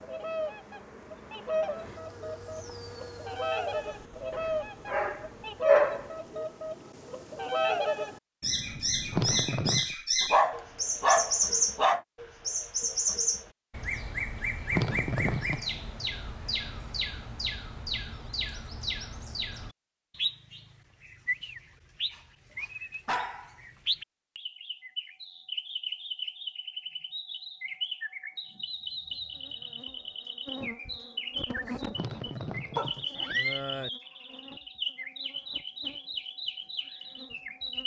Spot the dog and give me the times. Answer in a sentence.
The dog can be heard from 4.3 to 6.0 s, from 10.2 to 12.0 s, from 22.1 to 23.6 s and from 32.8 to 33.9 s.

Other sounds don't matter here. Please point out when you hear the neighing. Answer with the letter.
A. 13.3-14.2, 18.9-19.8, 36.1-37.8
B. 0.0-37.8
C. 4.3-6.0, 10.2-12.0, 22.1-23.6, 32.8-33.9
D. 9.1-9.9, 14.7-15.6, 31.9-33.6
D.